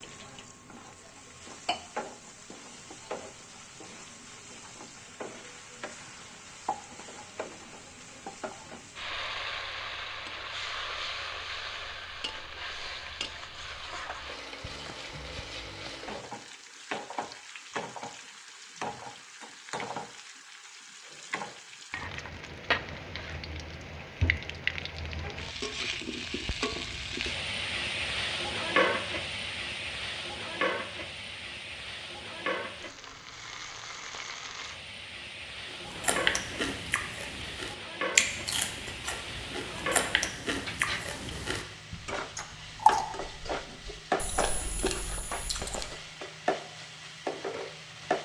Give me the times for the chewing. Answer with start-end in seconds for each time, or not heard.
35.6-46.0.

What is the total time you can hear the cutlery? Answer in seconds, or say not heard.
not heard.